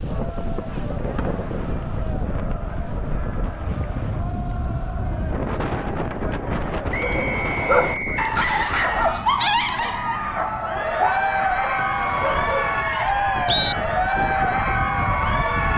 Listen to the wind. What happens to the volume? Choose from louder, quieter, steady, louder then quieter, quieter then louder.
quieter then louder.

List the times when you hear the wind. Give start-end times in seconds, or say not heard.
0.0-15.7.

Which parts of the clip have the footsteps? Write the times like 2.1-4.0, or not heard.
not heard.